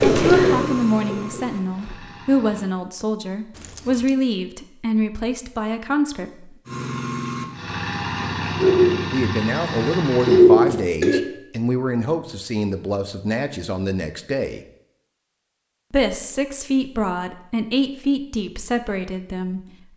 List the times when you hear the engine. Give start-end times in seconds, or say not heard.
0.0-2.7, 6.7-10.4.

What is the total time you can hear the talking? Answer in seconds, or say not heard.
16 s.